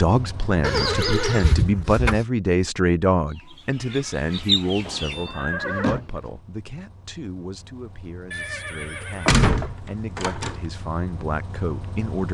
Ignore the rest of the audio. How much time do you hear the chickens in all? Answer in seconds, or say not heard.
2 s.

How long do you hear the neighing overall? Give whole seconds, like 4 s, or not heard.
3 s.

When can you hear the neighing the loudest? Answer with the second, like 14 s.
1 s.